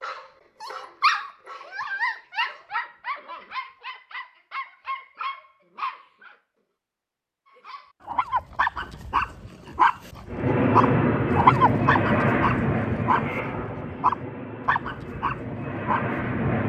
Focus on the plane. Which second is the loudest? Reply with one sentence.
The volume of the plane peaks at 11 seconds.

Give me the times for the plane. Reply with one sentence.
You can hear the plane from 10.2 to 16.6 s.